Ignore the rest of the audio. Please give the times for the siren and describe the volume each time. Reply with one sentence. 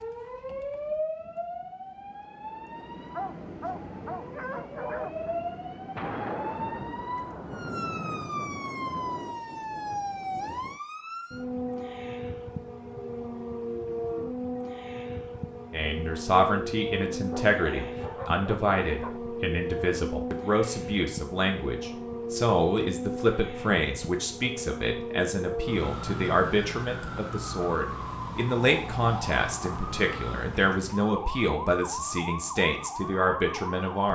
You can hear the siren from 0.0 to 34.1 s, at a steady volume.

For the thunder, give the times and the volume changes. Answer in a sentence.
The thunder can be heard from 6.0 to 10.8 s, getting quieter.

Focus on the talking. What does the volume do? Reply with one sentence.
The volume of the talking stays about the same.